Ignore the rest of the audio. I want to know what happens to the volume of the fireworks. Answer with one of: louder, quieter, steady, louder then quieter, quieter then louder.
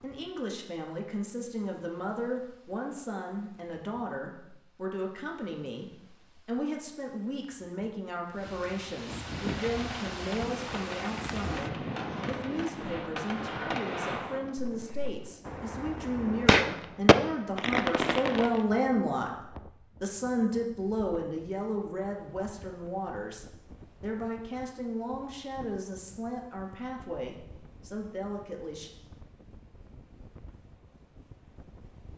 louder.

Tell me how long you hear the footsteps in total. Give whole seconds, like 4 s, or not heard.
not heard.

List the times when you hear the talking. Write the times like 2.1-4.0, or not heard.
0.0-28.9.